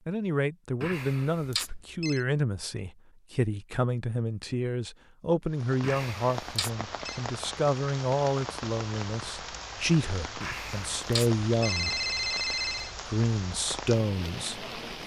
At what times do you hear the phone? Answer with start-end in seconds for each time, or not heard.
0.8-2.2, 5.8-7.2, 10.4-12.9.